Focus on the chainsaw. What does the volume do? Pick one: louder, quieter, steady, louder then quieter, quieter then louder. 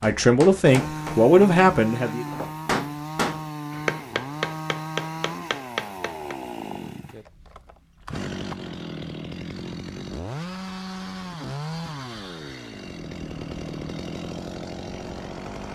steady.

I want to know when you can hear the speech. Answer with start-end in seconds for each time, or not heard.
0.0-2.2.